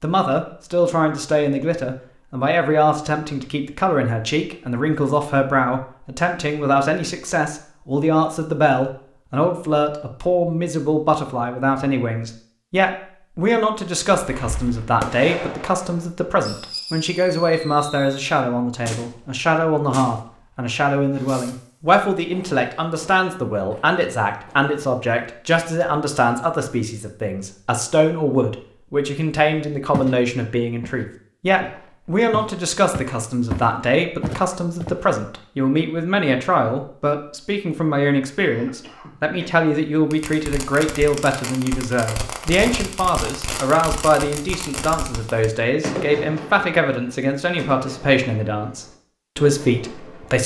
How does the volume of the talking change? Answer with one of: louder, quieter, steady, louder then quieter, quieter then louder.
steady.